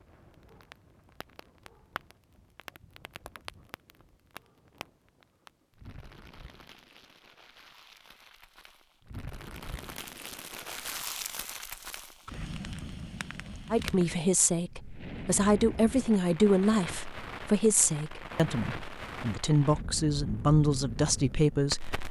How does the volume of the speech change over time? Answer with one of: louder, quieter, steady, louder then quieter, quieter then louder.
steady.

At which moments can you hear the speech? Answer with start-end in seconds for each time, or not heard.
13.7-22.0.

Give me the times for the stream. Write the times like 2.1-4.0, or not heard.
not heard.